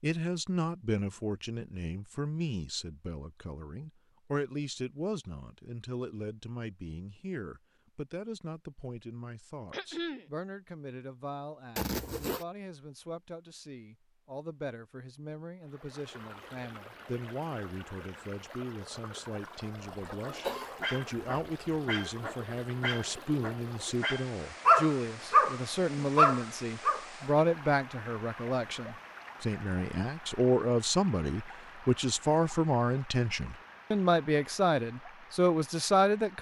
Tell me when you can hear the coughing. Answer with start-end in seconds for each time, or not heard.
9.7-10.2, 20.2-20.8.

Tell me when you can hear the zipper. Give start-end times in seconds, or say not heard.
11.8-12.4.